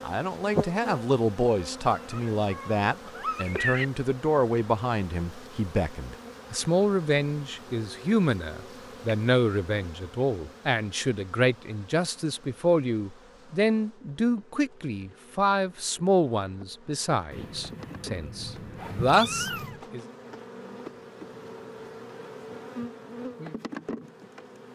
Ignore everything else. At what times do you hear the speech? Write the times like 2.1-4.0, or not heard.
0.0-20.1.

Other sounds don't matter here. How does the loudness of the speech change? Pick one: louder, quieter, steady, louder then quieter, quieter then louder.
steady.